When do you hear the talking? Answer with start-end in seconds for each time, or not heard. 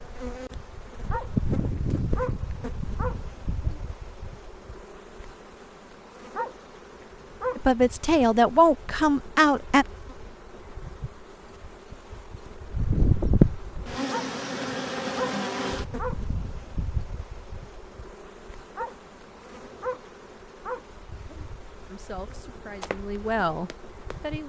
7.5-9.8, 21.9-24.4.